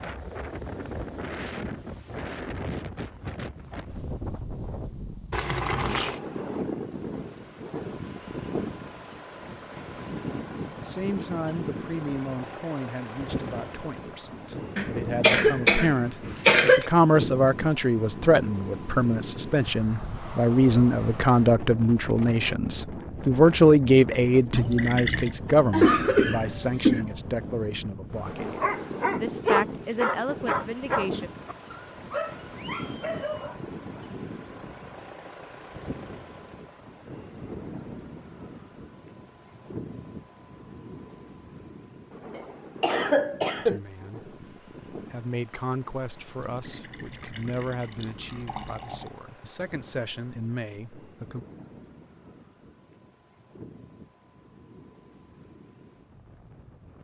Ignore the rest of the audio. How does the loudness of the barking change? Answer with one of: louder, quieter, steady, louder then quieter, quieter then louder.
quieter.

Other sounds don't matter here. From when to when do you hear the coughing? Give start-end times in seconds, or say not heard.
14.8-16.9, 25.5-27.1, 42.4-43.8.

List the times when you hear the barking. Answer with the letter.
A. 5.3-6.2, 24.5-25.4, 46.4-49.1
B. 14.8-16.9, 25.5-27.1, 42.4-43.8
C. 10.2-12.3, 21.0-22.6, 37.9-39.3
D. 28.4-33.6
D.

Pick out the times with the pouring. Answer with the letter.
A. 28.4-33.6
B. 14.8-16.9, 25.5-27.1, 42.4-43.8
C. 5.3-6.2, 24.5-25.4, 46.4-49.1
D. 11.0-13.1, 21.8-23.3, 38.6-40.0
C.